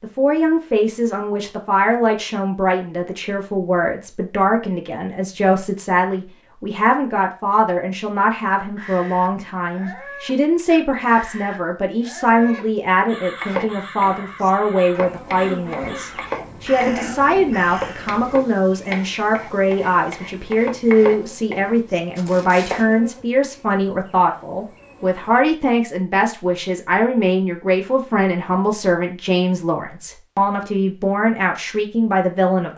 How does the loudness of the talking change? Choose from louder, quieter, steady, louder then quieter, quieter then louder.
steady.